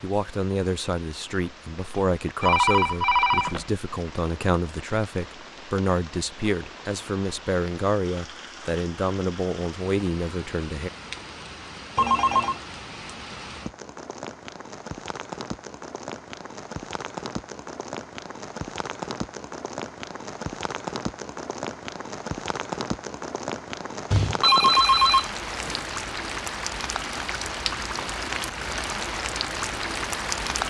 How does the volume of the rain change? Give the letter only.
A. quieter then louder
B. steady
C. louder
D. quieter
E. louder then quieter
C.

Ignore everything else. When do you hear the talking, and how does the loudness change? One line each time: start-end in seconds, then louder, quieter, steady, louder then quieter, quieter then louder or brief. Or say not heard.
0.0-10.9 steady.